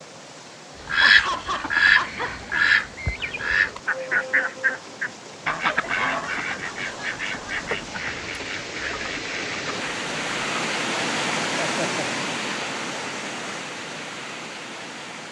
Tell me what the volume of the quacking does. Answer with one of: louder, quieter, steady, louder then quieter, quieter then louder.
quieter.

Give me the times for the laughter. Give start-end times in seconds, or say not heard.
1.0-2.4, 5.6-7.7, 11.6-12.2.